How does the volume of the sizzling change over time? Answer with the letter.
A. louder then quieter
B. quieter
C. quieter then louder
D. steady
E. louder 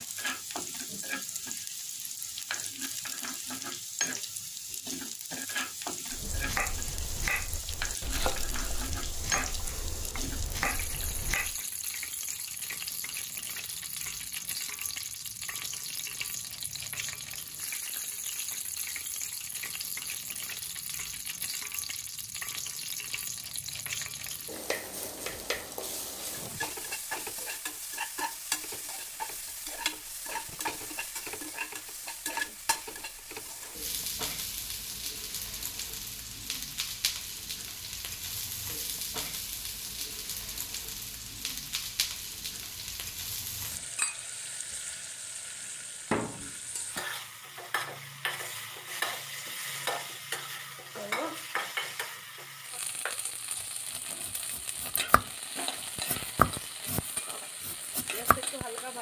D.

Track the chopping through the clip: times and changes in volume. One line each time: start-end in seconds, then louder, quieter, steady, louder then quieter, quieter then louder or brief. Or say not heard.
6.0-11.6 quieter then louder
53.7-58.5 louder then quieter.